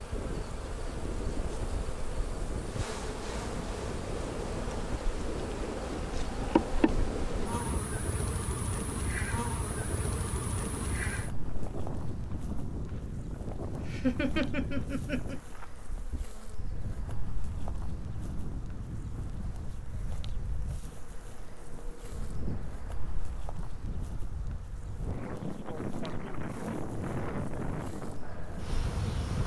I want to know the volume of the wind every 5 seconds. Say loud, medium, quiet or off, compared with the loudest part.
loud, loud, loud, medium, medium, loud.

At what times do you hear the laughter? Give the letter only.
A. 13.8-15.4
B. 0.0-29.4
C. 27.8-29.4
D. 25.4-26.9
A.